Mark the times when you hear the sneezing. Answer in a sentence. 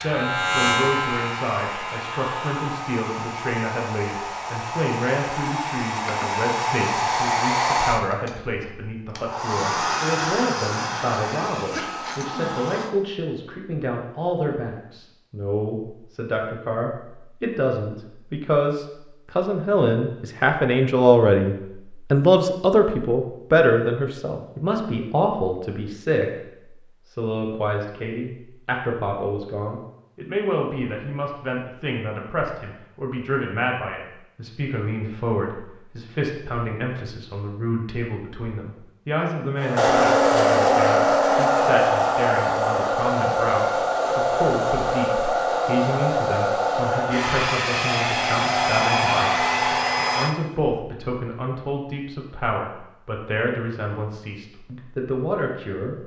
You can hear the sneezing from 11.7 to 12.6 s.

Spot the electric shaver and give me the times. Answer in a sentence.
The electric shaver can be heard from 0.0 to 2.6 s.